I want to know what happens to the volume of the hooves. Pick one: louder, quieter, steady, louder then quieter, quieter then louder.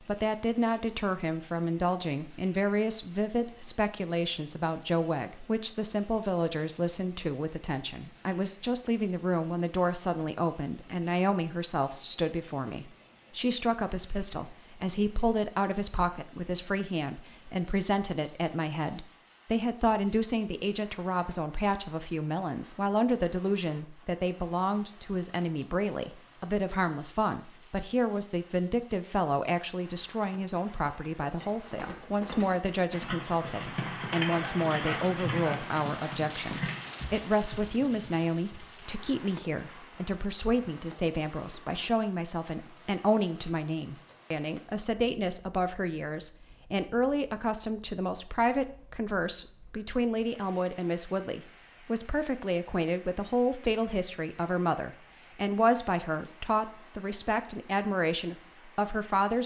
louder then quieter.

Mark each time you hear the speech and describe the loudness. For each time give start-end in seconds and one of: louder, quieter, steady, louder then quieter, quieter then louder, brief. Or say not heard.
0.0-59.4 steady.